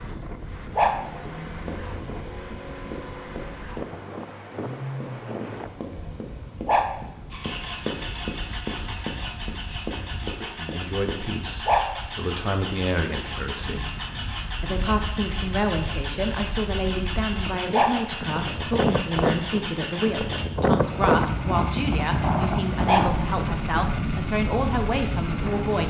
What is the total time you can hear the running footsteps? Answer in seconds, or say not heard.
10 s.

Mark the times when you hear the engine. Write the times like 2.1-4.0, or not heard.
0.0-25.8.